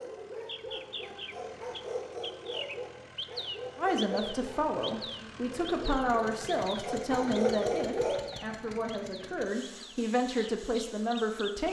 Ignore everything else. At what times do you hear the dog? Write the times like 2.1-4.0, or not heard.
0.0-8.2.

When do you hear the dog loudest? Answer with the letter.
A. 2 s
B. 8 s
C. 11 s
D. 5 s
B.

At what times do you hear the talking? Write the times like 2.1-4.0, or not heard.
3.8-11.6.